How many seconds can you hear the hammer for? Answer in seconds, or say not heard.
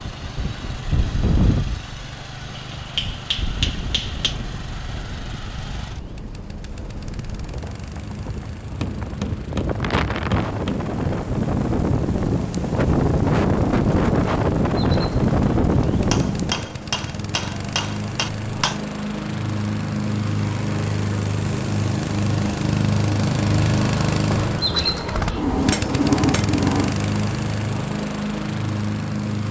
8 s.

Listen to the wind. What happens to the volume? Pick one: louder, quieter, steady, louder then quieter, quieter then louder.
quieter then louder.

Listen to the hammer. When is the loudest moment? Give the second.
26 s.